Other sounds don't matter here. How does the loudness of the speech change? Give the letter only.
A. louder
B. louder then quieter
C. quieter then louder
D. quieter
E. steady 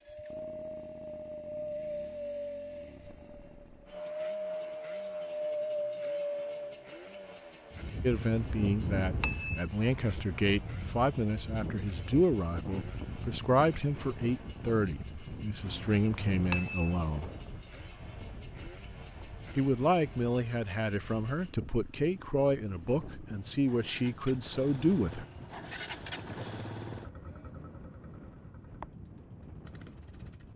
E.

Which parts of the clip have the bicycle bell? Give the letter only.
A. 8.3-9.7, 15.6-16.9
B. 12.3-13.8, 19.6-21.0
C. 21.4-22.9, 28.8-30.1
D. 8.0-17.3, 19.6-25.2
A.